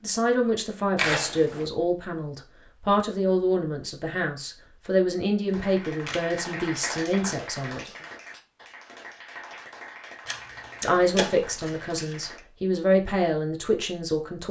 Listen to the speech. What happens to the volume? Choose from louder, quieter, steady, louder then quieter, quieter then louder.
steady.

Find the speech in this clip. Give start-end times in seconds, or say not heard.
0.0-7.9, 10.8-14.4.